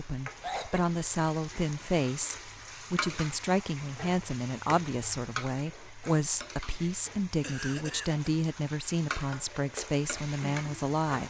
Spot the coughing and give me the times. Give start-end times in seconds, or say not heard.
0.4-0.9, 7.4-8.1.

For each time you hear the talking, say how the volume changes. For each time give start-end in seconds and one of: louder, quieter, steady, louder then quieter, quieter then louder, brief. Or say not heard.
0.0-11.2 steady.